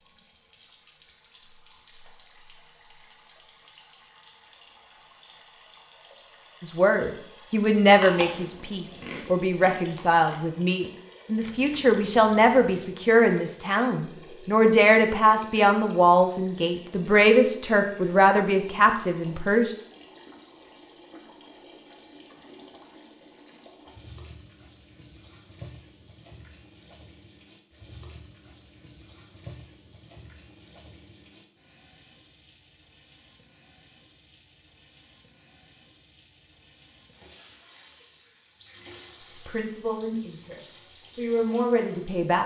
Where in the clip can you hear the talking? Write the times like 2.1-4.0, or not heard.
6.6-19.8, 39.5-42.4.